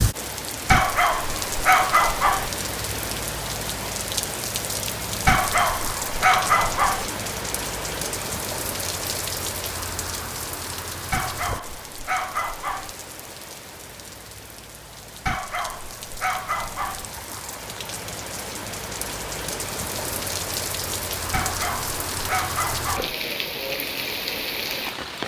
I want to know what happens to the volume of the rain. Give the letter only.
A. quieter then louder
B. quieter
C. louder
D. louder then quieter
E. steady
A.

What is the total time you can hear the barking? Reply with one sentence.
You can hear the barking for 9 seconds altogether.